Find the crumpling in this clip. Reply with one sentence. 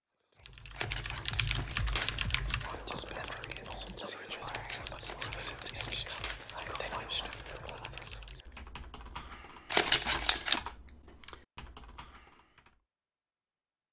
You can hear the crumpling from 0.7 to 2.8 s, from 5.0 to 7.6 s and from 9.7 to 10.6 s.